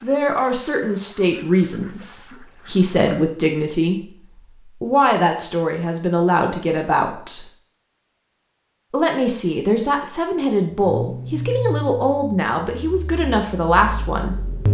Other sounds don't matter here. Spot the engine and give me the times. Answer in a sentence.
You can hear the engine from 10.9 to 14.6 s.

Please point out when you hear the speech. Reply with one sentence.
The speech can be heard from 0.0 to 4.0 s, from 4.8 to 7.5 s and from 8.9 to 14.3 s.